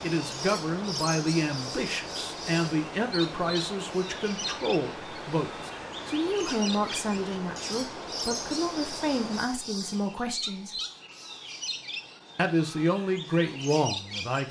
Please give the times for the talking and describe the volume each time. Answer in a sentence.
You can hear the talking from 0.0 to 10.8 s, at a steady volume; and briefly from 12.3 to 14.4 s.